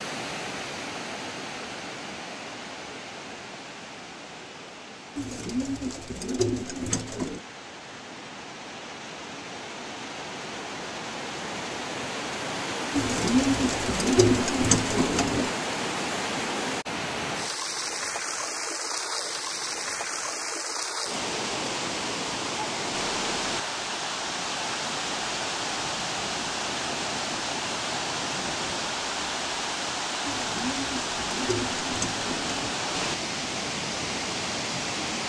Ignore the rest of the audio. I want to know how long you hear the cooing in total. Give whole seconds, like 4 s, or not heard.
7 s.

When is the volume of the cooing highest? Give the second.
14 s.